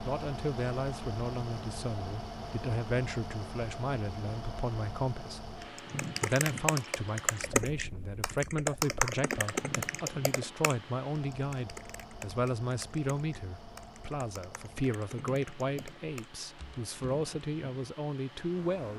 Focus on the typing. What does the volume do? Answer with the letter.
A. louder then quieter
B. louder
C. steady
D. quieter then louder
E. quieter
E.